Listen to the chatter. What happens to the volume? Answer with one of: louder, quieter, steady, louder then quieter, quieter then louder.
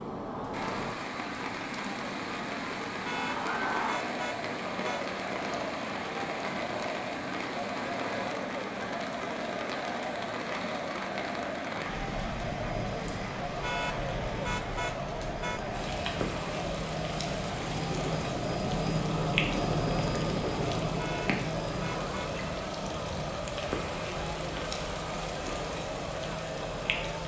steady.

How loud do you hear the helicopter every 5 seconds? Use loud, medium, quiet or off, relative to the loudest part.
medium, medium, medium, loud, loud, medium.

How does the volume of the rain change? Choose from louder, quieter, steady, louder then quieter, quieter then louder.
steady.